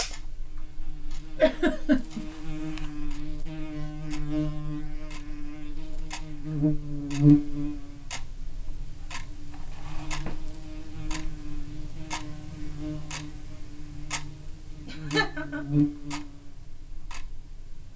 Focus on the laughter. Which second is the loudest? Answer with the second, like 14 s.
2 s.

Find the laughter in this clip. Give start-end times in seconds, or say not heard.
1.4-2.2, 14.8-15.8.